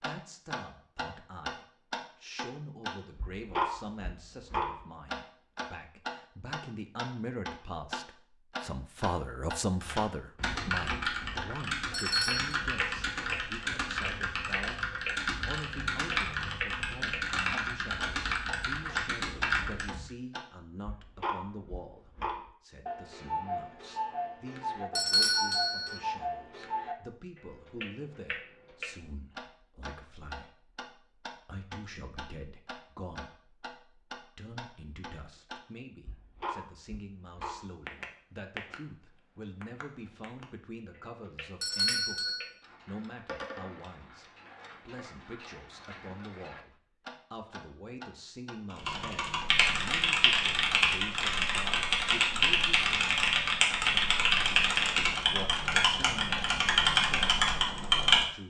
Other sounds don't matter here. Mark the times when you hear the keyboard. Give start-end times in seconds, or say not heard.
9.8-20.1, 48.7-58.2.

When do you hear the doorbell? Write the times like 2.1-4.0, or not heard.
11.9-12.6, 24.9-26.0, 41.6-42.5.